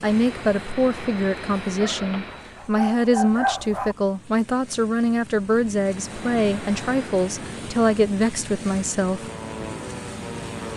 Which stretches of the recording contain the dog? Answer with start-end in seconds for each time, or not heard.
1.8-4.0.